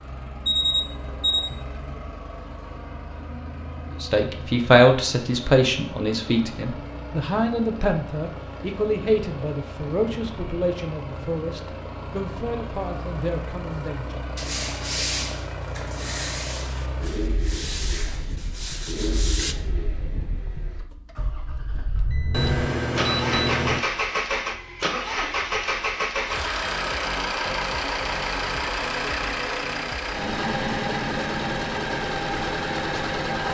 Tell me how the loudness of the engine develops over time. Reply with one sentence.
The loudness of the engine goes up.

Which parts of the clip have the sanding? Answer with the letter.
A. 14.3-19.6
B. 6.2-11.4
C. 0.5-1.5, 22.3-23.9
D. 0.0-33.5
A.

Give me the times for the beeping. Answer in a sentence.
The beeping can be heard from 0.5 to 1.5 s and from 22.3 to 23.9 s.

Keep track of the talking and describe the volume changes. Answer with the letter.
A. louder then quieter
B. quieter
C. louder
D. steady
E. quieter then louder
B.